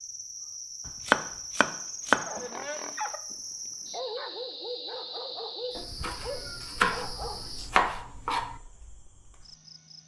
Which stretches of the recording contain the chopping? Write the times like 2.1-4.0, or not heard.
0.8-2.4, 5.8-8.6.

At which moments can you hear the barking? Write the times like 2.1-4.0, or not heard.
2.1-7.5.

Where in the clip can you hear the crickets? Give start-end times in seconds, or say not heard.
0.0-10.0.